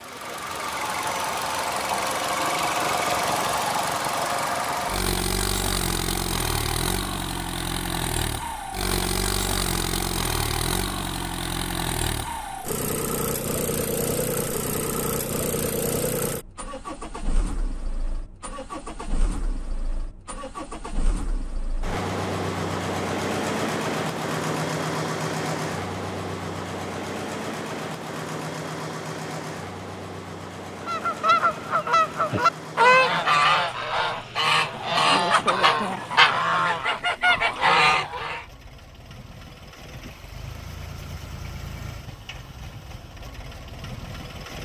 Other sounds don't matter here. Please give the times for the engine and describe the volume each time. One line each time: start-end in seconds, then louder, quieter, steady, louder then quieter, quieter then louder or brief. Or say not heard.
0.0-44.5 quieter.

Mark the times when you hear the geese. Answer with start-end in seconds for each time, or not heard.
30.9-38.5.